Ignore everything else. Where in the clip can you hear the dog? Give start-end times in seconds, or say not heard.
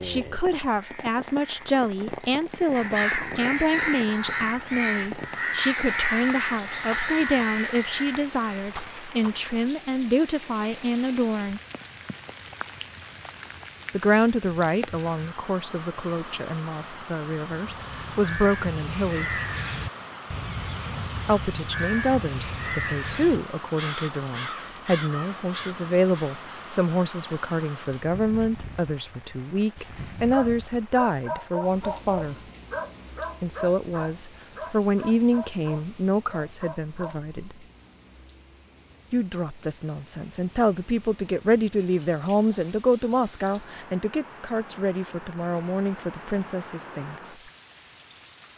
30.2-37.2.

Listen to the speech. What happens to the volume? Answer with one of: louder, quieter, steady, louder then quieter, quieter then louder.
steady.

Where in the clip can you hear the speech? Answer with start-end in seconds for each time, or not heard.
0.0-11.6, 13.9-19.4, 21.2-32.4, 33.4-37.5, 39.1-47.1.